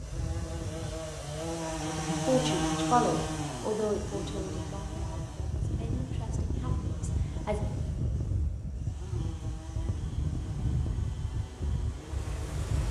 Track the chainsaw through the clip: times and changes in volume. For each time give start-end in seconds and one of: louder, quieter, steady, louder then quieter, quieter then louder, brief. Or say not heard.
0.0-12.7 quieter.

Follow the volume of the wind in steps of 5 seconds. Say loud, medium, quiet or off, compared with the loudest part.
medium, loud, loud.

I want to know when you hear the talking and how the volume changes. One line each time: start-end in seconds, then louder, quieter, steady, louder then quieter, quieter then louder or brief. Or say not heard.
1.9-7.6 quieter.